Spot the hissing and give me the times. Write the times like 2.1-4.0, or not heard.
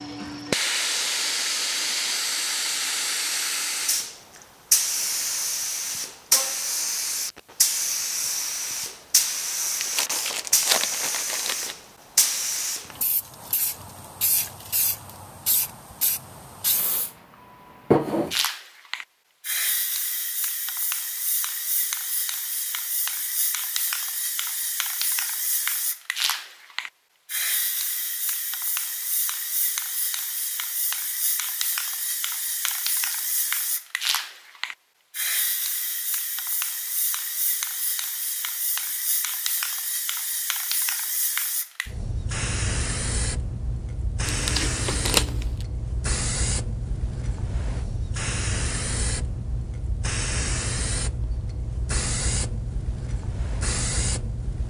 0.0-54.6.